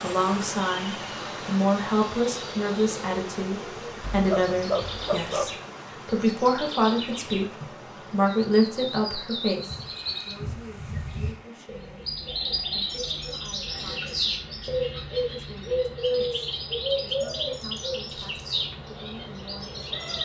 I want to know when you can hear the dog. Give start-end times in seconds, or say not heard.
4.0-5.5.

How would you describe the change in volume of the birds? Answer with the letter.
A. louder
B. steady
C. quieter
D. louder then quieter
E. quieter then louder
A.